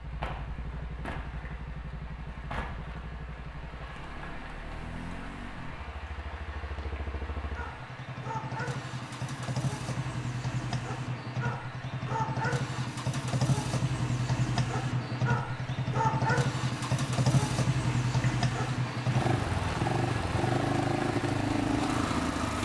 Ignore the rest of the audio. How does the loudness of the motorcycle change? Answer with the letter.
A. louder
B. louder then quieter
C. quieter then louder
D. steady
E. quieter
A.